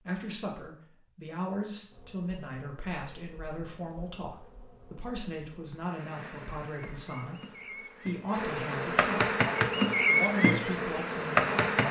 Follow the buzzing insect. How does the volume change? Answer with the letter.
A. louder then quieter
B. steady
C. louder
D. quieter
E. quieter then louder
C.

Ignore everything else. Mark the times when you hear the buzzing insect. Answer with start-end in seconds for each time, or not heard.
1.9-11.8.